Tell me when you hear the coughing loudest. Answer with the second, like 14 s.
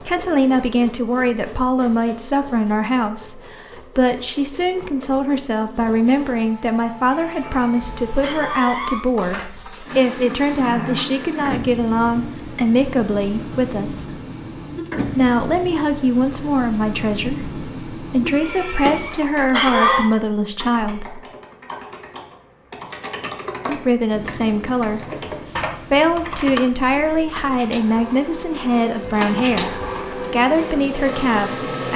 20 s.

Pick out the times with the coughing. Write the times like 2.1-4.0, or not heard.
7.0-9.1, 18.4-20.1.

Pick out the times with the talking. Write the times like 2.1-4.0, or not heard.
0.0-14.1, 15.1-21.2, 23.6-31.9.